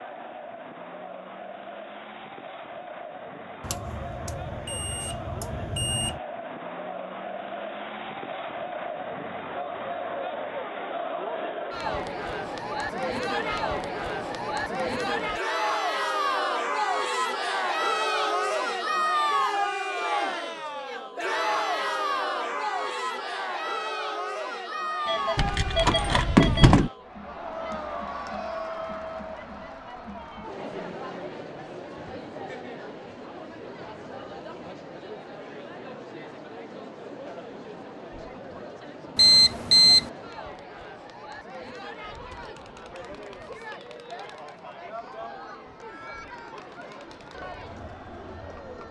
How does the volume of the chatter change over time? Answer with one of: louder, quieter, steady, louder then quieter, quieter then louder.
louder then quieter.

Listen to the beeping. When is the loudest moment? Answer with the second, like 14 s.
40 s.